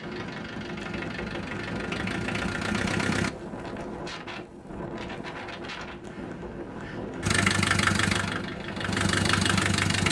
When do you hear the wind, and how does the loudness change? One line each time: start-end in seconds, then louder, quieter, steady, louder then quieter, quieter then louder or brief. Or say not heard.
0.0-10.0 steady.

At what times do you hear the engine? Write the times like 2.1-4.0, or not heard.
0.0-3.3, 7.2-10.0.